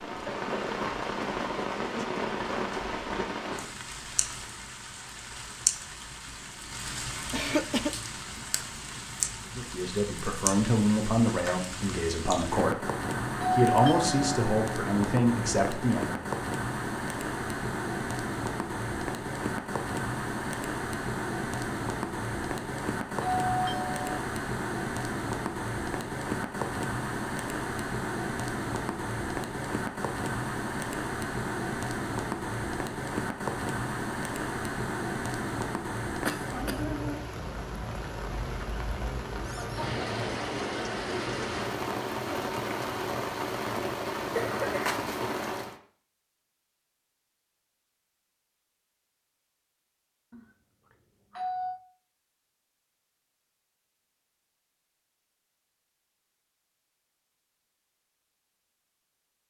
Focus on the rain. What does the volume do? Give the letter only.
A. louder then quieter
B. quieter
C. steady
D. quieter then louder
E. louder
C.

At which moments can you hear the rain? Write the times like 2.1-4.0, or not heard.
0.0-45.8.